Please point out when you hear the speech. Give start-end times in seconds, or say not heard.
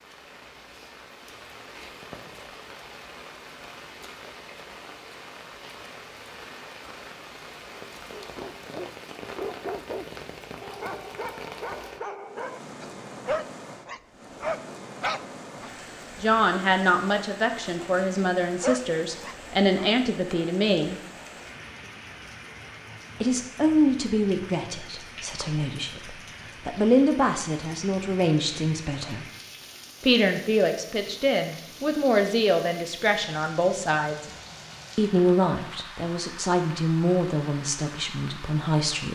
16.2-21.0, 23.2-29.2, 30.0-34.2, 35.0-39.0.